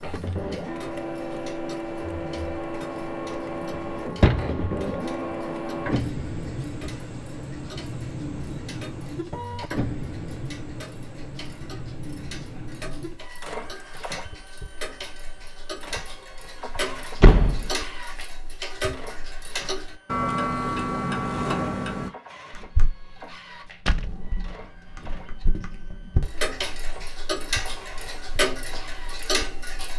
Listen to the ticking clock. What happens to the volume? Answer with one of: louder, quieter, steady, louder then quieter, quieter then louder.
louder.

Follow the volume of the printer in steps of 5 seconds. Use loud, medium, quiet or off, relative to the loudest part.
loud, loud, medium, medium, quiet, quiet.